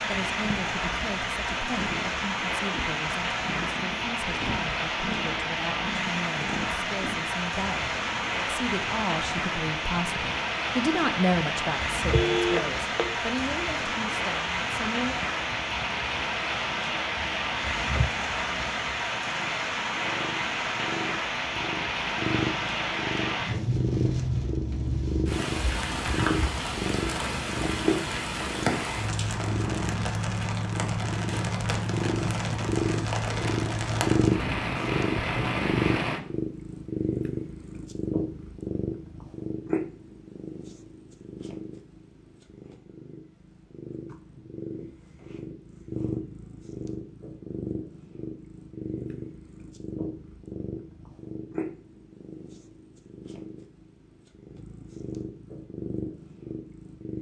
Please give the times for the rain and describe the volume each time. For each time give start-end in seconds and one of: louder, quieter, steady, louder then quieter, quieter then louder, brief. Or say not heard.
0.0-36.2 steady.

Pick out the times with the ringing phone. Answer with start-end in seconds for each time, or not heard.
12.1-13.2.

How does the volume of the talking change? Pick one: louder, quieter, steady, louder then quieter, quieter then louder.
louder then quieter.